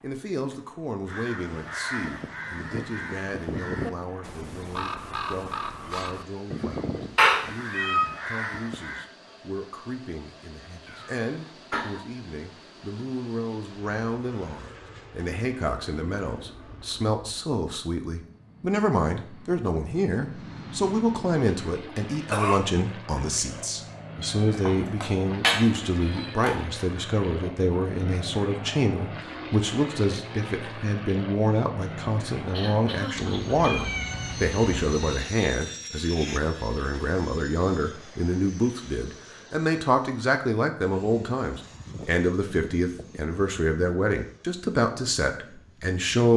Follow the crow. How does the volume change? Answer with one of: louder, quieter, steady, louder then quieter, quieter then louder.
steady.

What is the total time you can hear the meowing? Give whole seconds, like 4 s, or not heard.
5 s.